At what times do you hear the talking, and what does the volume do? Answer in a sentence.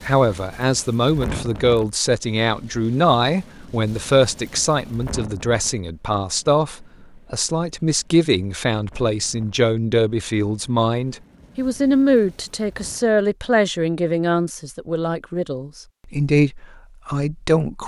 You can hear the talking from 0.1 to 17.8 s, at a steady volume.